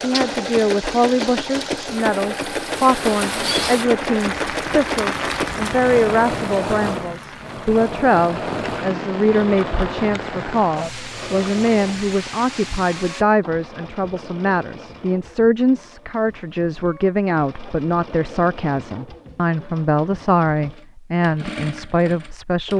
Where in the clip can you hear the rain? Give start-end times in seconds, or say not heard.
0.0-13.2.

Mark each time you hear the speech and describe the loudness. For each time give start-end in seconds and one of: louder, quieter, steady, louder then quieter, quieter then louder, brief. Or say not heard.
0.0-22.7 steady.